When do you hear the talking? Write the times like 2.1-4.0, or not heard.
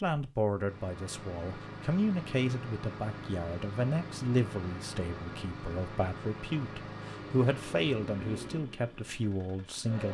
0.0-10.1.